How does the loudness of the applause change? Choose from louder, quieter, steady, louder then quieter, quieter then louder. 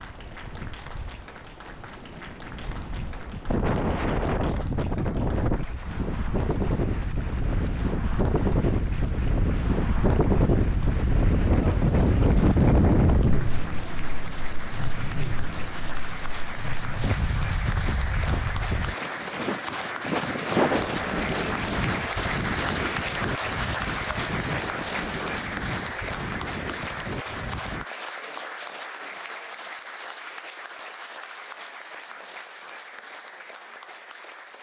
louder then quieter.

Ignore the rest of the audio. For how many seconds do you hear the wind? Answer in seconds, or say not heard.
28 s.